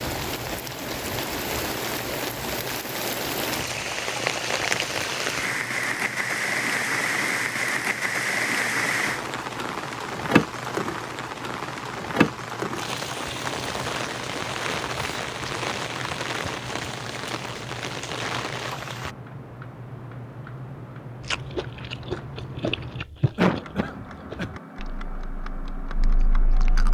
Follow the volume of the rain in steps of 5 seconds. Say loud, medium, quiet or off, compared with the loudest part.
loud, loud, loud, medium, off, off.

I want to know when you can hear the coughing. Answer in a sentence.
You can hear the coughing from 23.4 to 24.5 s.